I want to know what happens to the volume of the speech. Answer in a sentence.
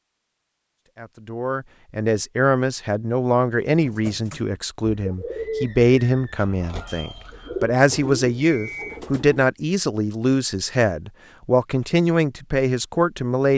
The loudness of the speech stays about the same.